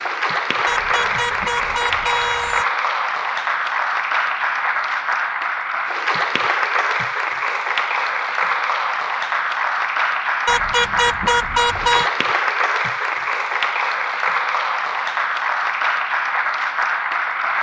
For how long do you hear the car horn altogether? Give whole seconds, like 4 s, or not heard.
4 s.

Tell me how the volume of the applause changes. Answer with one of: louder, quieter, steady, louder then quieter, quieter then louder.
steady.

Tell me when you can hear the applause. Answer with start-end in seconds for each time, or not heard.
0.0-17.5.